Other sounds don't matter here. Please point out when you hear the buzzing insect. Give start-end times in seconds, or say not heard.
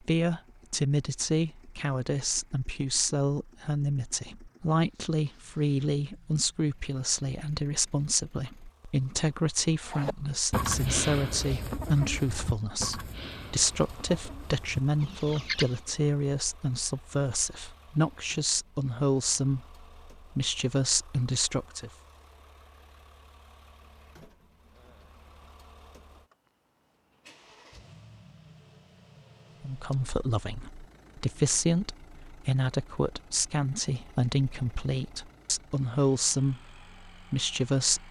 not heard.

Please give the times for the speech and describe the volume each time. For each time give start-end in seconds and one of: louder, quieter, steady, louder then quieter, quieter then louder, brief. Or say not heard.
0.1-21.9 steady
29.6-38.0 steady.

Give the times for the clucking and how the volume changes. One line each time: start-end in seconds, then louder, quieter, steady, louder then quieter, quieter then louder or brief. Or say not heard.
9.8-15.8 quieter then louder.